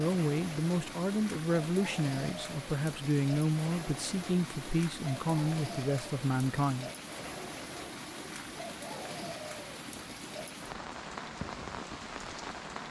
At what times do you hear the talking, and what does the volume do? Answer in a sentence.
You can hear the talking from 0.0 to 6.9 s, at a steady volume.